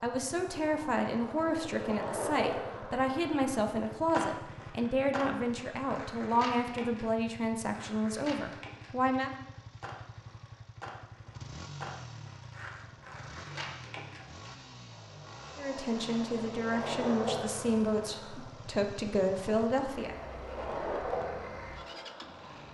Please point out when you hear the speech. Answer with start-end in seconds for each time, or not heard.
0.0-9.3, 15.6-20.1.